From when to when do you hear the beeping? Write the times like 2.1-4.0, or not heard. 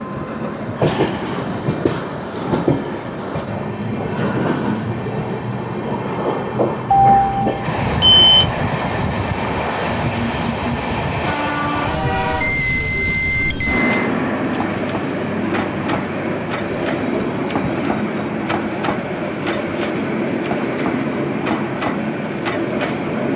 6.9-8.5, 12.4-14.1.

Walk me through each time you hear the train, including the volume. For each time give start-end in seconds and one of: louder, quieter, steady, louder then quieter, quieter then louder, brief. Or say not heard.
0.0-23.3 steady.